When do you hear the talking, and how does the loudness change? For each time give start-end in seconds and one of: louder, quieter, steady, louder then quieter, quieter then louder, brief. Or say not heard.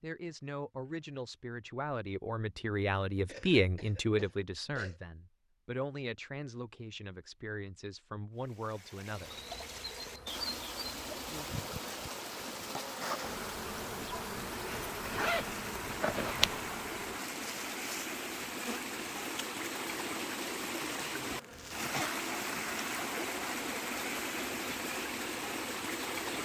0.0-9.3 louder then quieter.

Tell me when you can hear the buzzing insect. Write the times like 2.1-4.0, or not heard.
9.1-26.4.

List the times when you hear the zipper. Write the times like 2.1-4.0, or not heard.
14.7-16.6.